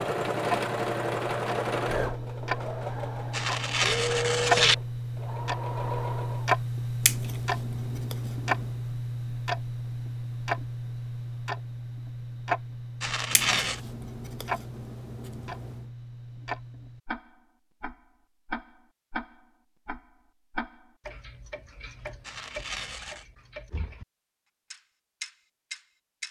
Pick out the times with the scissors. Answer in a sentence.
The scissors can be heard from 7.0 to 8.8 s and from 13.3 to 15.9 s.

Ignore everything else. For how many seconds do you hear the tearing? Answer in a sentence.
You can hear the tearing for 3 seconds altogether.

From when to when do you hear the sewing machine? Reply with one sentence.
You can hear the sewing machine from 0.0 to 6.5 s.